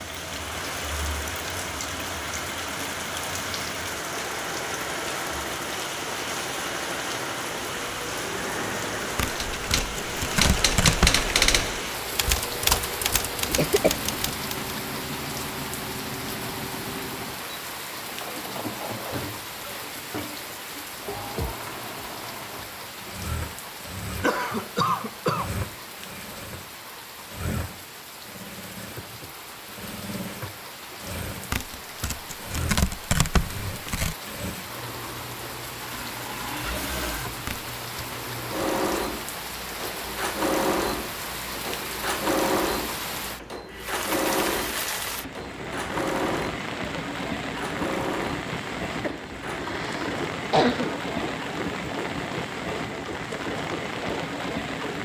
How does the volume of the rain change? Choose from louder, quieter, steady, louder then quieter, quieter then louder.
quieter then louder.